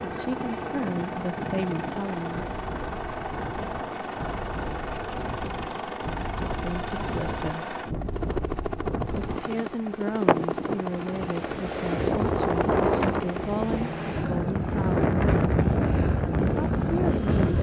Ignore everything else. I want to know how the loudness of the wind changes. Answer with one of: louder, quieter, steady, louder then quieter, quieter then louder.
louder.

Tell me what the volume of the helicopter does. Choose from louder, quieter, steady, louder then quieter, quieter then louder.
steady.